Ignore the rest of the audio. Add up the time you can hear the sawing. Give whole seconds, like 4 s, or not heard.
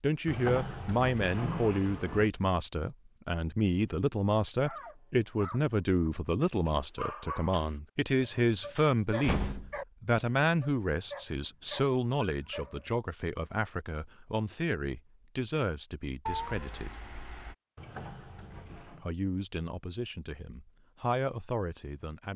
not heard.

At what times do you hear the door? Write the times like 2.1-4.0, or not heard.
0.2-2.3, 8.8-9.8, 17.8-19.1.